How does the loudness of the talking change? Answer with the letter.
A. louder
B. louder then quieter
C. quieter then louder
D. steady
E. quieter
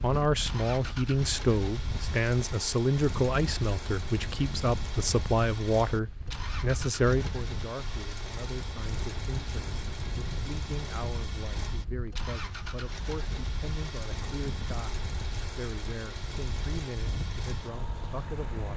E.